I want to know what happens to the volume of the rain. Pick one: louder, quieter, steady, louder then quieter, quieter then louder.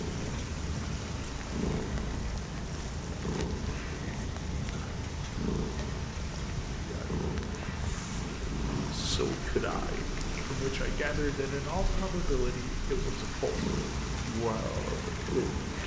steady.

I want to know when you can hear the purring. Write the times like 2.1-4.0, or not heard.
0.0-15.8.